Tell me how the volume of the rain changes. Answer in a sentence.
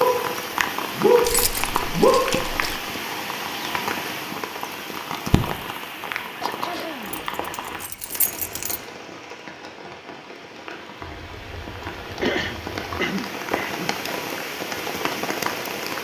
The loudness of the rain goes down, then up.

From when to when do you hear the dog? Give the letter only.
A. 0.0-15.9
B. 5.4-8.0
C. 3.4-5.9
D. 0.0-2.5
D.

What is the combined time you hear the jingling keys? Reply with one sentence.
You can hear the jingling keys for 5 seconds altogether.